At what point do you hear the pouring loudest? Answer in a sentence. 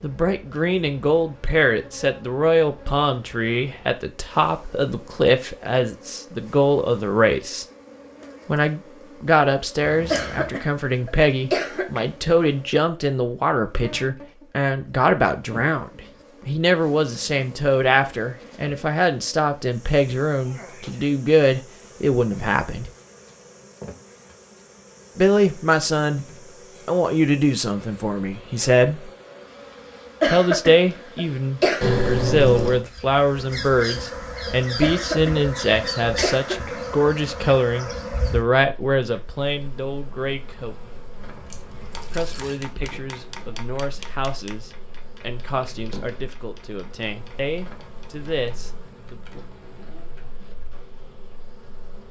The loudest moment of the pouring is at 32 seconds.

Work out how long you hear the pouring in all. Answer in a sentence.
You can hear the pouring for 3 seconds altogether.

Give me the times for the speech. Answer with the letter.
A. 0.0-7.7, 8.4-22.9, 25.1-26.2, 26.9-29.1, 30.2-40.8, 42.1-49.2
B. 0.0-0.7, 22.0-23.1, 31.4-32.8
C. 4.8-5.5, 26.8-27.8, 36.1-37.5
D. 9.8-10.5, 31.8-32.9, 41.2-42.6
A.